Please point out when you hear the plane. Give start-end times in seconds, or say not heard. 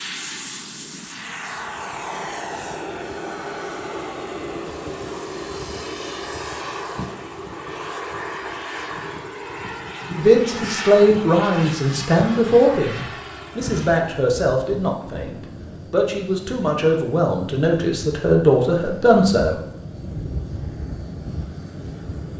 0.0-22.3.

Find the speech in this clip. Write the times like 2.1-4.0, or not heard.
10.1-19.6.